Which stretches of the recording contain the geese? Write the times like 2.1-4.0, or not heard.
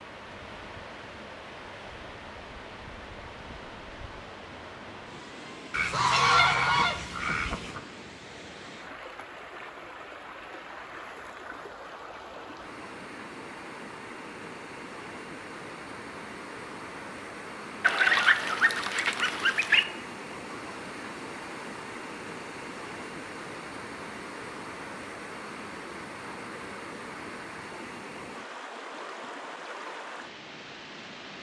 5.7-7.8, 17.8-19.9.